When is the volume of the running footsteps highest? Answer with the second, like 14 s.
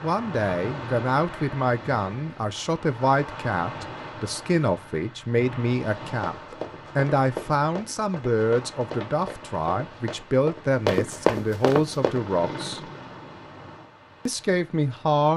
11 s.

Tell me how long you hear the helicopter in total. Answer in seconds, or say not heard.
2 s.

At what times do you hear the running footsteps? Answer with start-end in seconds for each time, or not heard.
6.2-12.3.